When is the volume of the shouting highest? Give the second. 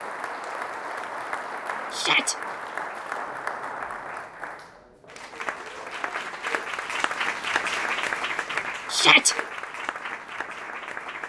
9 s.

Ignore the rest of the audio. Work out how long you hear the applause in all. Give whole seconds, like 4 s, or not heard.
11 s.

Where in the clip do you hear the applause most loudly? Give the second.
8 s.